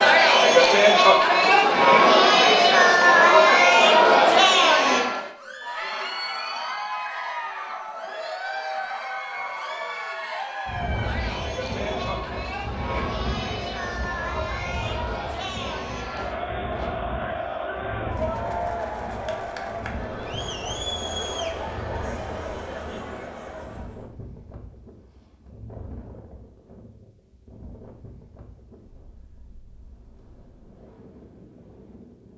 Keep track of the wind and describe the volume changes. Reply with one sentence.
The loudness of the wind goes down.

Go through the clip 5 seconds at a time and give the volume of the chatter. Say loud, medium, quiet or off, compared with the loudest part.
loud, quiet, quiet, quiet, quiet, off, off.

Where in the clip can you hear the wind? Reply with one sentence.
The wind can be heard from 10.7 to 32.3 s.